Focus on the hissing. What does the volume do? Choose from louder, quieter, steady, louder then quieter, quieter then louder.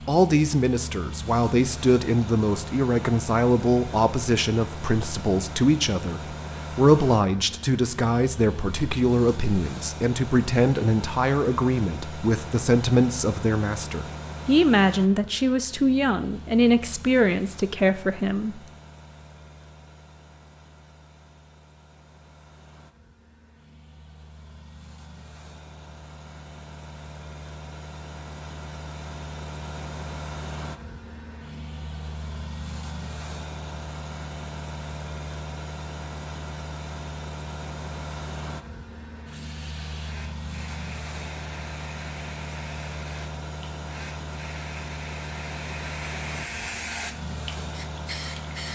louder.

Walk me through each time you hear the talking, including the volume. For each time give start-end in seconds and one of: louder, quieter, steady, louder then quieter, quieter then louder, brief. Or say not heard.
0.1-18.6 steady.